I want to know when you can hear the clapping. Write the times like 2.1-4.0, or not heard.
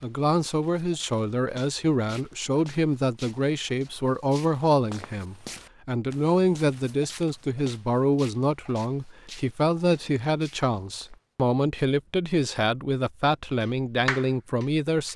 13.6-15.1.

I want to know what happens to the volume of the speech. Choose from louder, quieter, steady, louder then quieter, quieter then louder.
steady.